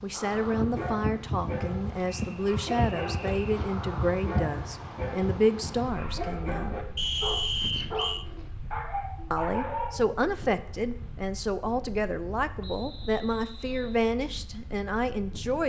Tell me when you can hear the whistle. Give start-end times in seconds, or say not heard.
2.0-3.4, 7.0-8.2, 12.6-14.0.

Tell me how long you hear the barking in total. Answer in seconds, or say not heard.
10 s.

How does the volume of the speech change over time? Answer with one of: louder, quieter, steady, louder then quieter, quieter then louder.
steady.